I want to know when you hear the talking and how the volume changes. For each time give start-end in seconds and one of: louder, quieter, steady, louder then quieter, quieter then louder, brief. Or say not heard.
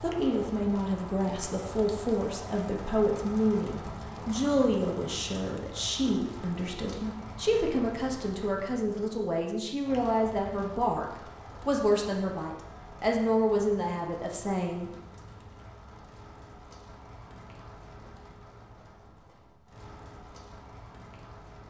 0.0-14.9 steady.